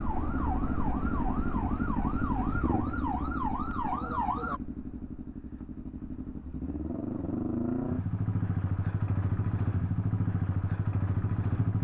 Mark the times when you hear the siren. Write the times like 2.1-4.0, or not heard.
0.0-4.6.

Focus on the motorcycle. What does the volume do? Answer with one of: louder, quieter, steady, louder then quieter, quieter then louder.
quieter then louder.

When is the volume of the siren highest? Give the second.
4 s.